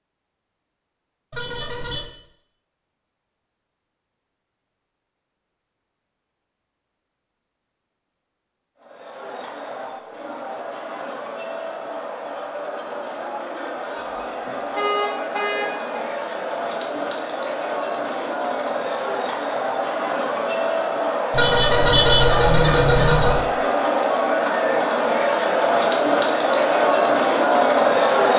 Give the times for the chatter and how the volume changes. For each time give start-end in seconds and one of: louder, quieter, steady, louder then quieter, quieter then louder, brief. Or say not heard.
8.8-28.3 louder.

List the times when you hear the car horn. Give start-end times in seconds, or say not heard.
1.3-2.0, 14.1-16.0, 21.3-23.4.